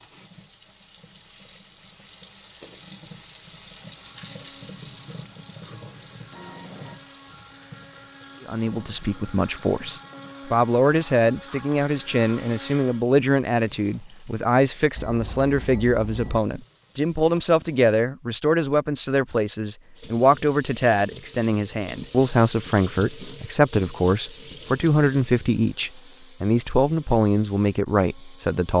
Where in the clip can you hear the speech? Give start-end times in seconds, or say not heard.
8.4-28.7.